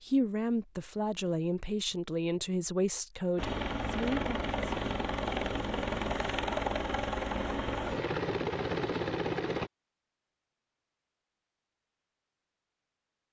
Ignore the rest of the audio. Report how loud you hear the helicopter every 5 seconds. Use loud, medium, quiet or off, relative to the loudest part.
loud, loud, off.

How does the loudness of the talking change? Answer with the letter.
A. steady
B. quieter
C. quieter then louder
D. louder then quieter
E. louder
A.